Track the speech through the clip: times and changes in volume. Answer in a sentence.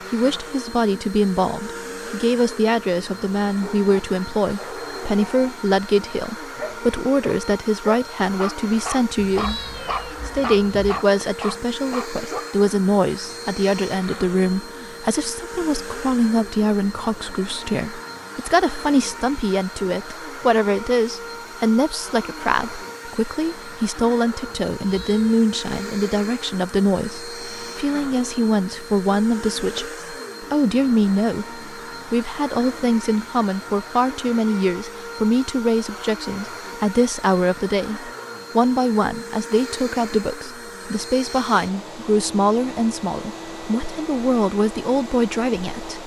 The speech can be heard from 0.1 to 46.0 s, at a steady volume.